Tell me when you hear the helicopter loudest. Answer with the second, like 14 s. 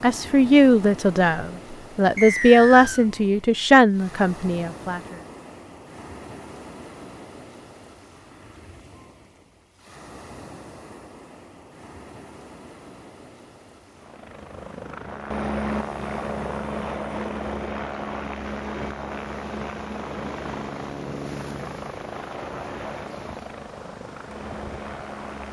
16 s.